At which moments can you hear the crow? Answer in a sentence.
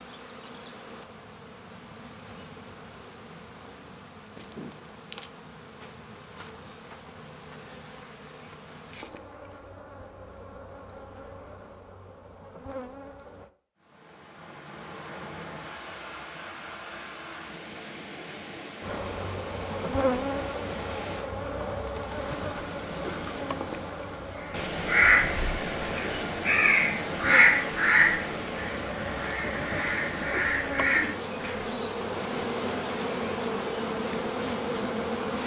The crow can be heard from 24.8 to 31.6 s.